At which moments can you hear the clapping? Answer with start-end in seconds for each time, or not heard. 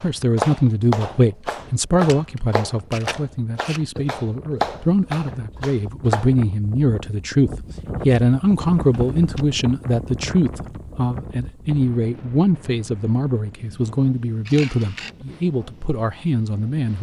0.0-6.3.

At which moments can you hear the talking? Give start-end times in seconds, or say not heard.
0.0-16.9.